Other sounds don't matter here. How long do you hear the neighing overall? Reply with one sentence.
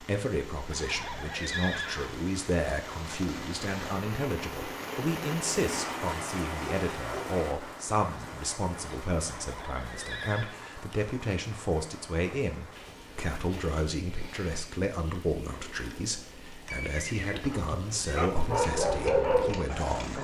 The neighing can be heard for 4 seconds in total.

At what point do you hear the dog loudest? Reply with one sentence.
The loudest moment of the dog is at 19 seconds.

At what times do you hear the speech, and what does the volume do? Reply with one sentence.
You can hear the speech from 0.0 to 20.1 s, at a steady volume.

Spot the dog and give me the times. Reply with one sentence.
You can hear the dog from 17.3 to 20.1 s.